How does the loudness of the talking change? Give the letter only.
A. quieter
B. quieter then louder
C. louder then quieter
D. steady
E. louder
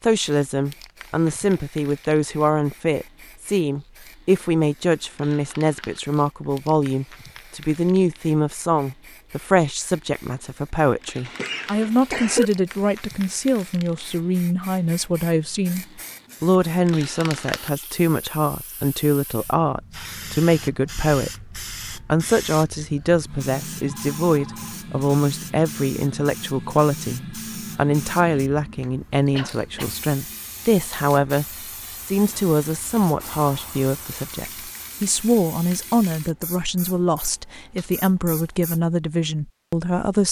D.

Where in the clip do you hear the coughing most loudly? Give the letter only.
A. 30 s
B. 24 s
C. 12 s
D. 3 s
C.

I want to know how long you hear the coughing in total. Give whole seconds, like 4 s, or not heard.
2 s.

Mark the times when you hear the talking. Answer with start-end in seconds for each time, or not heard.
0.0-40.2.